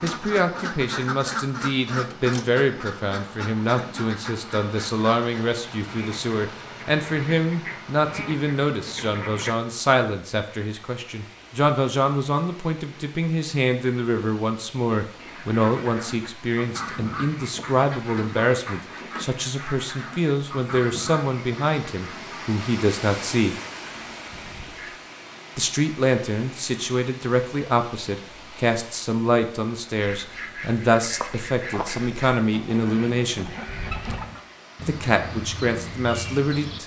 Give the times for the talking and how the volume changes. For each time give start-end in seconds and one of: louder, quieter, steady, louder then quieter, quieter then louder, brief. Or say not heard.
0.0-23.6 steady
25.6-33.5 steady
34.8-36.8 brief.